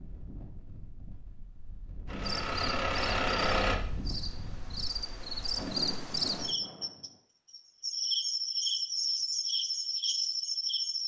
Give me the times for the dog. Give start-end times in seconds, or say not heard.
not heard.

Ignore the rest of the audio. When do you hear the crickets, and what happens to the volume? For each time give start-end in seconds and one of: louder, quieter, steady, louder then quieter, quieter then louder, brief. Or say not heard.
2.2-11.0 louder.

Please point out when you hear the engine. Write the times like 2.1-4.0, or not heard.
2.0-3.8.